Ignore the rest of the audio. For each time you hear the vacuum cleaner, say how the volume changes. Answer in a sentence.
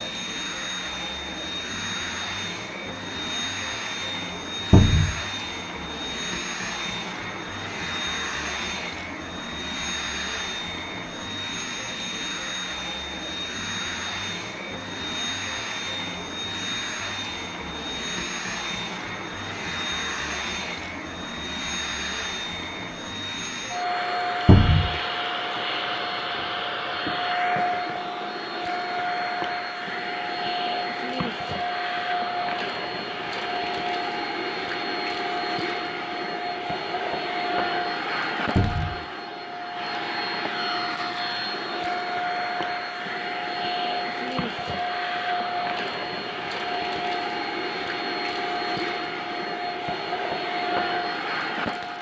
You can hear the vacuum cleaner from 0.0 to 51.9 s, at a steady volume.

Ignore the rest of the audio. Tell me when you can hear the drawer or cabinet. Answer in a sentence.
The drawer or cabinet can be heard from 4.7 to 5.2 s, from 24.4 to 24.9 s and from 38.5 to 39.0 s.